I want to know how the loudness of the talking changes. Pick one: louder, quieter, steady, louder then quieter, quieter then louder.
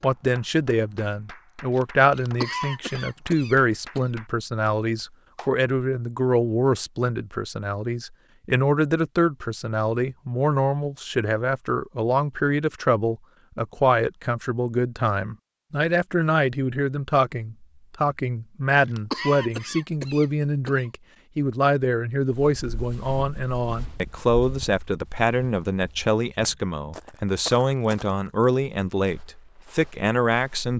steady.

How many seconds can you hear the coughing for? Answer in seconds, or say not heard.
4 s.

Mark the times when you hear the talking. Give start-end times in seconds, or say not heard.
0.0-30.7.